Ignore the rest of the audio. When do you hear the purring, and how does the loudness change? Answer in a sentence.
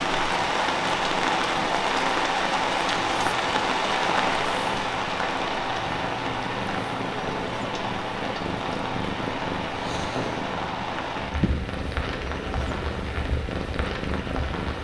The purring can be heard from 0.0 to 14.7 s, getting louder.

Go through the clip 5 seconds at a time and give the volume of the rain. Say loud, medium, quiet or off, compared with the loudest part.
loud, medium, medium.